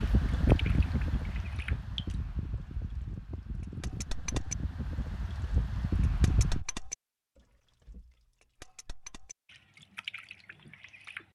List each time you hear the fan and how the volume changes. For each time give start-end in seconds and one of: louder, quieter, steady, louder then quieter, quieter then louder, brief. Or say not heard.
0.0-6.7 quieter then louder.